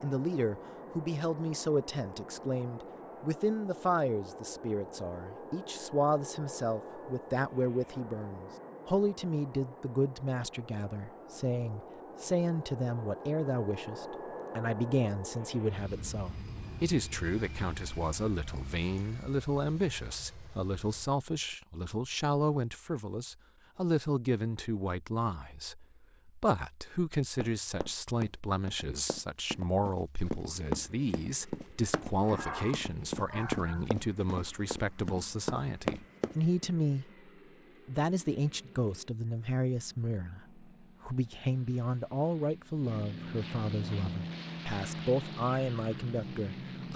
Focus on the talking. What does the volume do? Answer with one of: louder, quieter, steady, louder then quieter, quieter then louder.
steady.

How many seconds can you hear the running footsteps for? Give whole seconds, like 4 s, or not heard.
9 s.